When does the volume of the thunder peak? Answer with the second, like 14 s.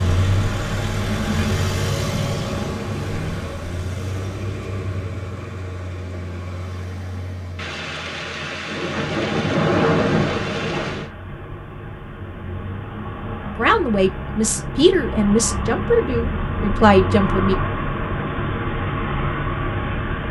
10 s.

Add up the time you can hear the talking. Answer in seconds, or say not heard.
4 s.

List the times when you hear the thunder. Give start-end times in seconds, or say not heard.
7.5-11.1.